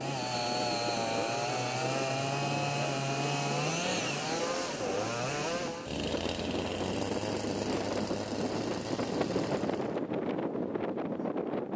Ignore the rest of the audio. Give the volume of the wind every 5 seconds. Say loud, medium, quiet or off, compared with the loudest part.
medium, loud, loud.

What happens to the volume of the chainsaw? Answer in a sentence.
The loudness of the chainsaw goes down.